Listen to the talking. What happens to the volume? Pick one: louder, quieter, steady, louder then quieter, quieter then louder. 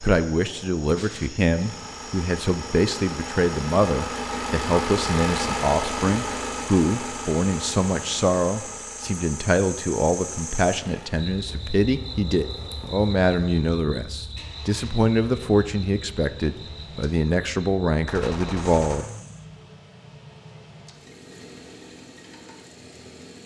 steady.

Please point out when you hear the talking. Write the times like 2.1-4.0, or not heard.
0.0-19.1.